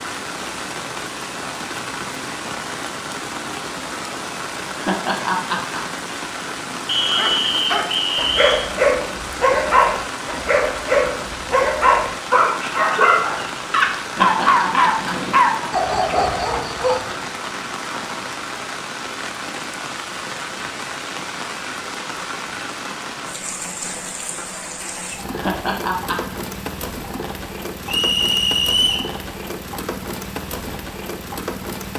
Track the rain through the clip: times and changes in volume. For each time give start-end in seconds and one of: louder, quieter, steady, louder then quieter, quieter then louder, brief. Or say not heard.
0.0-31.9 steady.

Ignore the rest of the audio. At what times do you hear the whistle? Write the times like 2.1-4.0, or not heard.
6.8-8.7, 27.9-29.1.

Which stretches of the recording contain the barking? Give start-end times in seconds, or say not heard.
7.0-17.1.